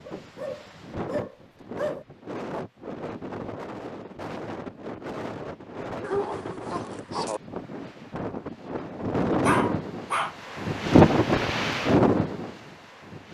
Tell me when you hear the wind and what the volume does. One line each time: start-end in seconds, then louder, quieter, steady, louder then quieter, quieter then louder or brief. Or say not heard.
0.0-13.3 louder.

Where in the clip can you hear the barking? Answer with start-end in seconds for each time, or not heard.
0.1-2.0, 6.0-7.4, 9.4-10.3.